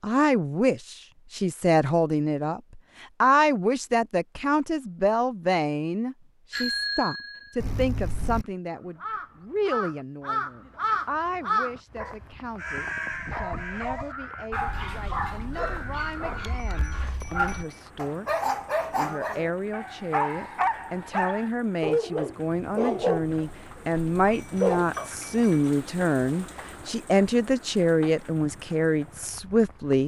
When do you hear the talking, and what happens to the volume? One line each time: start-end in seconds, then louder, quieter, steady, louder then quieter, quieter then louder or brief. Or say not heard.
0.0-30.0 quieter then louder.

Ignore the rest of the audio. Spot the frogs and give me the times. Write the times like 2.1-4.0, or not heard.
not heard.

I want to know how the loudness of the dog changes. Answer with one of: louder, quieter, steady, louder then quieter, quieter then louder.
louder.